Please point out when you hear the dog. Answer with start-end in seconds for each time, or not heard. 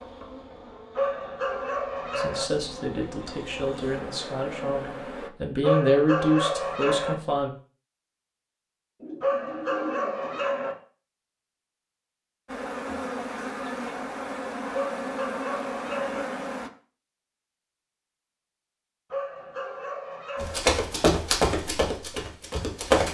0.9-2.5, 5.6-7.2, 9.2-10.8, 14.7-16.2, 19.1-20.6.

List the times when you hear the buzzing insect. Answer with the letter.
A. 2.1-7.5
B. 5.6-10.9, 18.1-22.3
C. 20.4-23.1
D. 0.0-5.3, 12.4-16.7
D.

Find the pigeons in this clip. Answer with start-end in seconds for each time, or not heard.
9.0-10.8.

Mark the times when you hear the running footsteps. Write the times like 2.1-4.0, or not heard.
20.4-23.1.